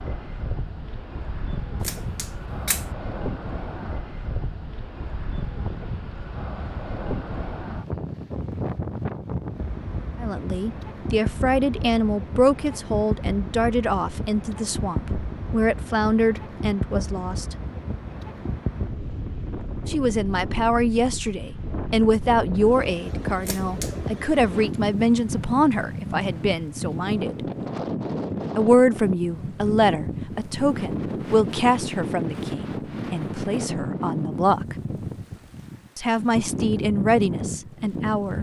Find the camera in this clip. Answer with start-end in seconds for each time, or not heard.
1.8-2.9, 23.4-24.1.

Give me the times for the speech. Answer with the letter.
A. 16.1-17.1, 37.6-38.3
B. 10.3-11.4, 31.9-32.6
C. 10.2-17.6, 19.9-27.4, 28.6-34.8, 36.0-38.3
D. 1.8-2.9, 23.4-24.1
C.